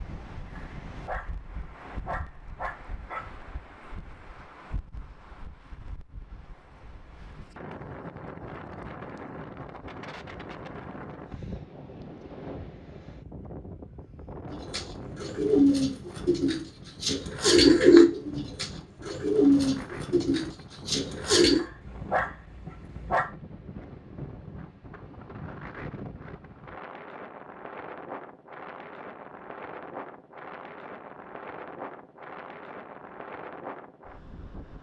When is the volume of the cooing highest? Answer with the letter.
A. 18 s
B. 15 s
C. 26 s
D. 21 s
A.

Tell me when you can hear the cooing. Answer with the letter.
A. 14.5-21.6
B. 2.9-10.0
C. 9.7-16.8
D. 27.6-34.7
A.